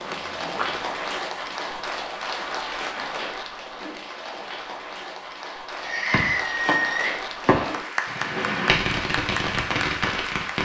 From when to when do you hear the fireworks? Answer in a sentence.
The fireworks can be heard from 5.8 to 10.6 s.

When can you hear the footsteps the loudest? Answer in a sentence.
The volume of the footsteps peaks at 1 second.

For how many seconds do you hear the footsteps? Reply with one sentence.
The footsteps can be heard for 2 seconds in total.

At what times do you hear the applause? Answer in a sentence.
The applause can be heard from 0.0 to 10.6 s.